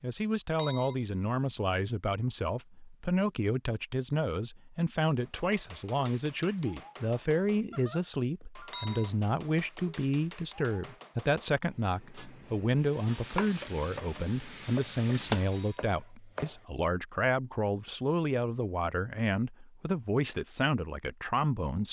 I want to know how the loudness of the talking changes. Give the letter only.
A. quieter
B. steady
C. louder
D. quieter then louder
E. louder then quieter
B.